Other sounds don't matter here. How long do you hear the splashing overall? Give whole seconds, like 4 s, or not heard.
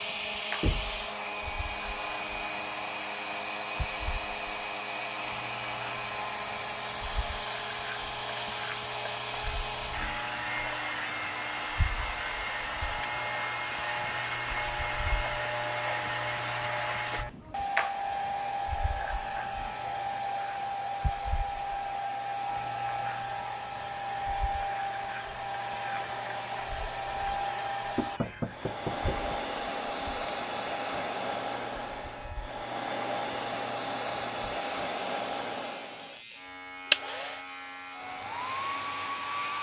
not heard.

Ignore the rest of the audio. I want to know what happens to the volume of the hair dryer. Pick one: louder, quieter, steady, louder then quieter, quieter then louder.
steady.